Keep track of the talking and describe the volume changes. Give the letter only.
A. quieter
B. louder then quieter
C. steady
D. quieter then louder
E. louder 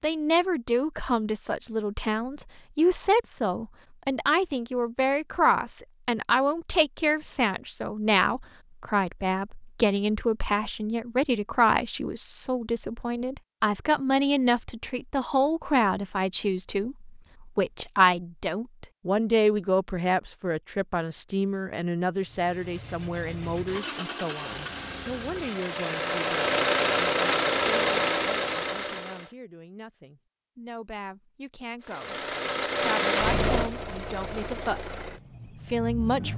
A.